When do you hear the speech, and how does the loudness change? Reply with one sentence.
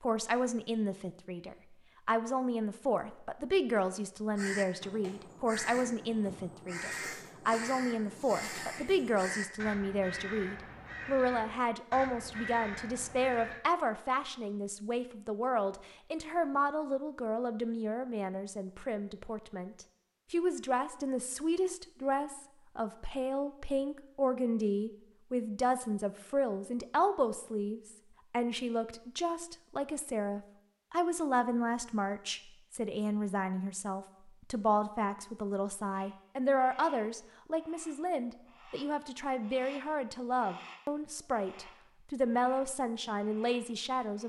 You can hear the speech from 0.0 to 44.2 s, at a steady volume.